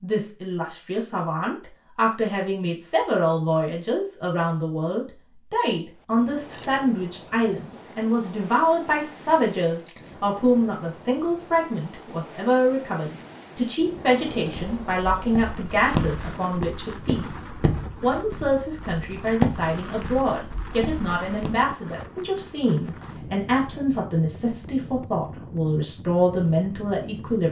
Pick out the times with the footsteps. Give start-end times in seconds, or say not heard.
14.3-21.6.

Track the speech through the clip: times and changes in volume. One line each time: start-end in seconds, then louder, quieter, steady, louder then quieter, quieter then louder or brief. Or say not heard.
0.0-27.4 steady.